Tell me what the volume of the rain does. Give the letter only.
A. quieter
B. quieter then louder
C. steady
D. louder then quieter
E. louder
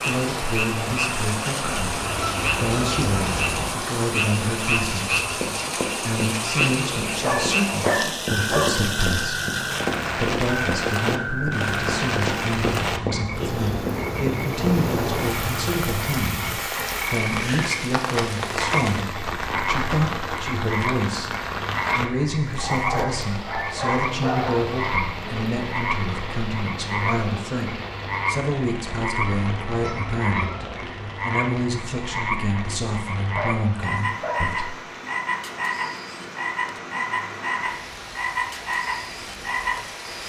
A.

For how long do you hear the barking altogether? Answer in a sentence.
You can hear the barking for 5 seconds altogether.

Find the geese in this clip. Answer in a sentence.
The geese can be heard from 1.6 to 3.6 s and from 29.2 to 30.8 s.